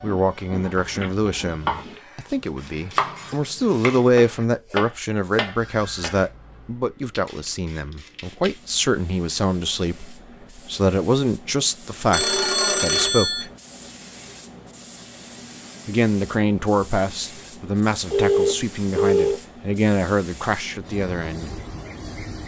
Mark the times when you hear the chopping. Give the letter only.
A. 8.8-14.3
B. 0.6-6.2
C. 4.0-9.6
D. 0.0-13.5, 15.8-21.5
B.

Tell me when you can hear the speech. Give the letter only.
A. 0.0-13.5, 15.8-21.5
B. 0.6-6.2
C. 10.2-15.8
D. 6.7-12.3
A.